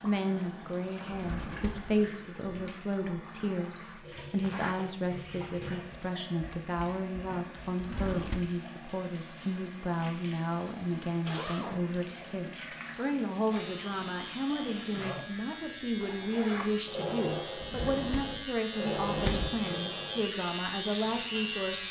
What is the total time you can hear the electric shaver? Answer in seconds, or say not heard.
8 s.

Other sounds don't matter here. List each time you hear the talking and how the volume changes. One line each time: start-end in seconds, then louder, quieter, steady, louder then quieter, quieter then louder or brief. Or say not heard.
0.0-21.8 steady.